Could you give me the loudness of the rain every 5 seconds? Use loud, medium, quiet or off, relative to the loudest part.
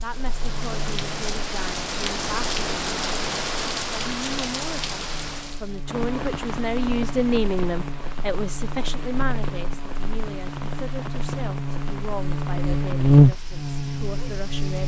loud, medium, medium.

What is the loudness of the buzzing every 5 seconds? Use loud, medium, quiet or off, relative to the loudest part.
quiet, quiet, loud.